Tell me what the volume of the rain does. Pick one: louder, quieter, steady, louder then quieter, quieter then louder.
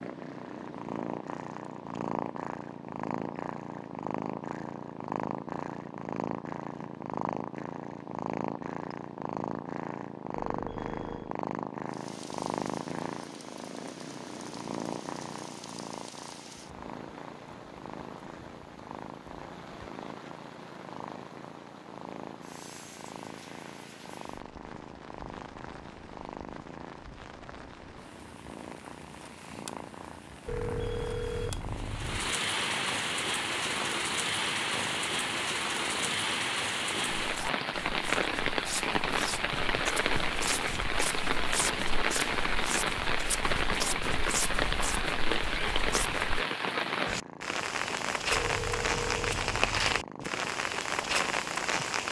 louder.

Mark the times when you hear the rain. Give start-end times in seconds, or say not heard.
11.8-52.0.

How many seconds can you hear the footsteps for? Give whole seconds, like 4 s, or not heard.
9 s.